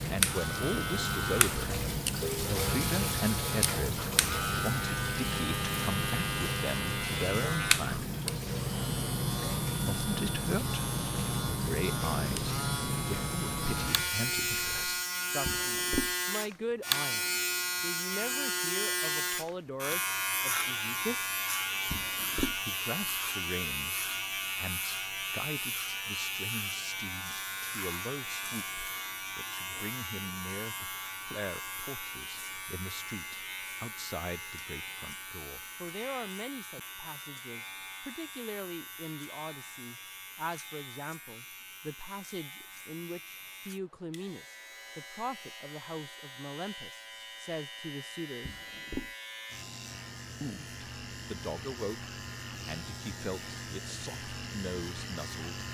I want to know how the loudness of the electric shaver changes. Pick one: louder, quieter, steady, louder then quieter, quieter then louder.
quieter.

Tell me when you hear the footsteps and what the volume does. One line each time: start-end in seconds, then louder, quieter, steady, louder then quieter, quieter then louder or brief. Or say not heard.
not heard.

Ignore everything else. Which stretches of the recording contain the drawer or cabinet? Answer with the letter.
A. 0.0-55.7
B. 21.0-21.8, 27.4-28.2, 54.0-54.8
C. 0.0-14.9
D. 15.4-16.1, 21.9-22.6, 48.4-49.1
D.